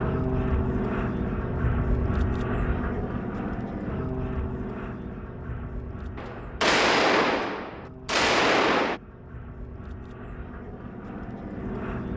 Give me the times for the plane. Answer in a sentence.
The plane can be heard from 0.0 to 12.1 s.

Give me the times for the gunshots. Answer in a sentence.
You can hear the gunshots from 6.2 to 9.0 s.